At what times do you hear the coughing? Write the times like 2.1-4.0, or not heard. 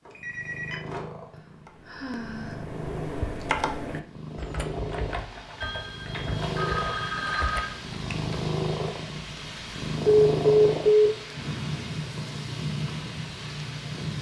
not heard.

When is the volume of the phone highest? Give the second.
11 s.